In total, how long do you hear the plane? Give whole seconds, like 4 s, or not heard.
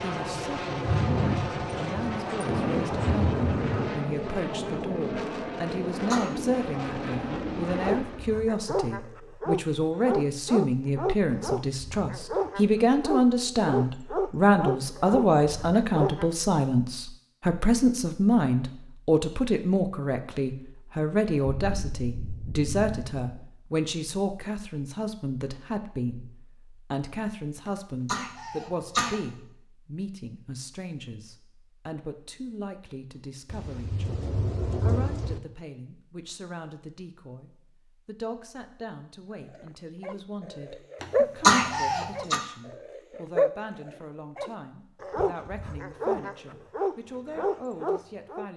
8 s.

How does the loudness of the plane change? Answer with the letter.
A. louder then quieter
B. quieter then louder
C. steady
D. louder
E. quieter
C.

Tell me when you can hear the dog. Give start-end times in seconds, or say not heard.
7.7-16.3, 39.5-48.5.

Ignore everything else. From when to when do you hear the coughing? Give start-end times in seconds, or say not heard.
5.7-6.3, 27.6-29.1, 41.0-42.4.